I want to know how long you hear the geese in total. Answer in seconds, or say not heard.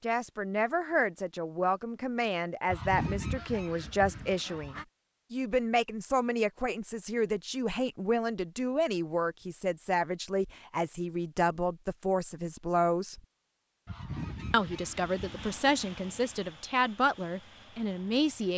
4 s.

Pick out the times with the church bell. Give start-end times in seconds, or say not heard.
not heard.